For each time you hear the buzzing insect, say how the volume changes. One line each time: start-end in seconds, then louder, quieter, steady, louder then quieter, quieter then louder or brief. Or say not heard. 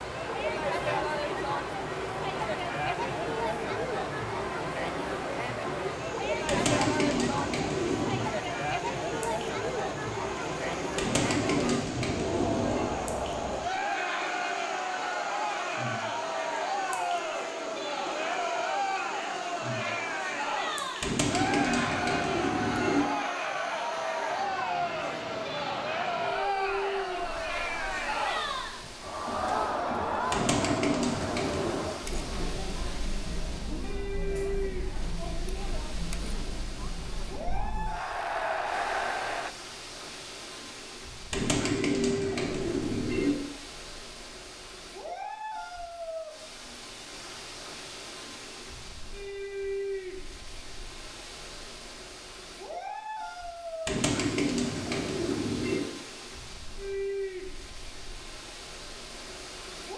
not heard.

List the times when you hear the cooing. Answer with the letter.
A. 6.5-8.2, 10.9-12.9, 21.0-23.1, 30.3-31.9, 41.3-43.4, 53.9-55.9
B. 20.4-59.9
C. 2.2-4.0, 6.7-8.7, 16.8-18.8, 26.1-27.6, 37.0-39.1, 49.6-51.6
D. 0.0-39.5
A.